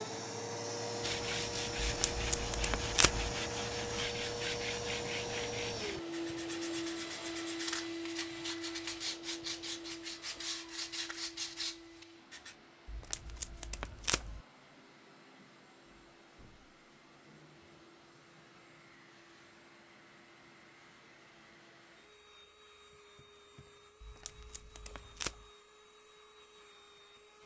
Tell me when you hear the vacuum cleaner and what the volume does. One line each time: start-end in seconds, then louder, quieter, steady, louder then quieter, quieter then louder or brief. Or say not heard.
0.0-27.4 quieter.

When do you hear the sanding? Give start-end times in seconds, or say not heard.
1.0-12.6.